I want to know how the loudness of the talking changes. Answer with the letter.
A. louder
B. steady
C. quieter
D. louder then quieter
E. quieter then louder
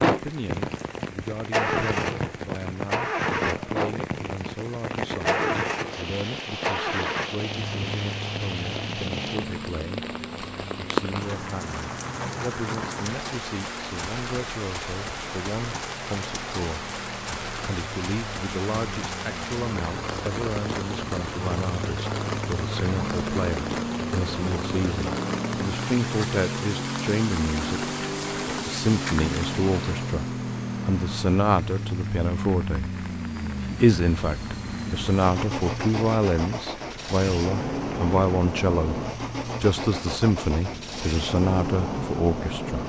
A.